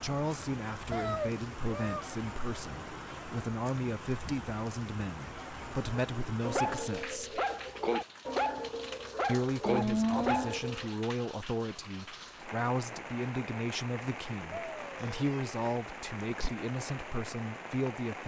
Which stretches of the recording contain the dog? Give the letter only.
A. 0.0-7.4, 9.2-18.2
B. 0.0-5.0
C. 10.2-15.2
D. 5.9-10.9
D.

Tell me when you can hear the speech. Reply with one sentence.
You can hear the speech from 0.0 to 7.4 s and from 9.2 to 18.2 s.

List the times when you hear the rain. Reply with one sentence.
The rain can be heard from 0.0 to 18.2 s.